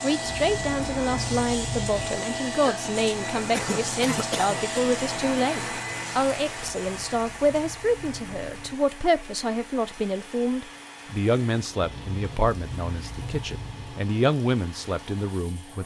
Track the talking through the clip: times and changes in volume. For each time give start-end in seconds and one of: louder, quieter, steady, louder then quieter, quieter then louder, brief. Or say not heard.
0.0-15.8 steady.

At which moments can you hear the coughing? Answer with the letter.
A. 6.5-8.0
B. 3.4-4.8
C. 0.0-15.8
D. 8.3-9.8
B.